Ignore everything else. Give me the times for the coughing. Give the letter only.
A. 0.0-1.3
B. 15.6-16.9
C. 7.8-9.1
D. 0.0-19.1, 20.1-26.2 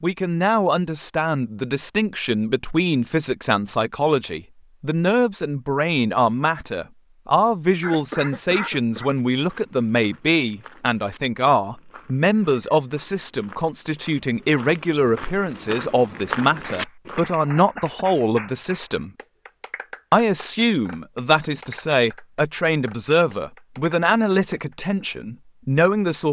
C.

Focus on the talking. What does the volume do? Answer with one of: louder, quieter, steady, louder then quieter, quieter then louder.
steady.